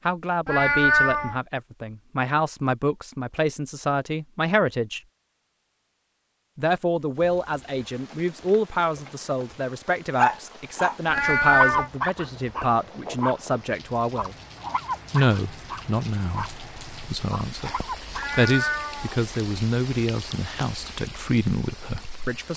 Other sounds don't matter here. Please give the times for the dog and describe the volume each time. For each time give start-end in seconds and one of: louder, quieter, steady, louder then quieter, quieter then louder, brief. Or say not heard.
10.2-16.5 quieter
17.3-18.4 brief.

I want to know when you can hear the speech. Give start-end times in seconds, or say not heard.
0.1-5.0, 6.5-14.3, 15.1-22.5.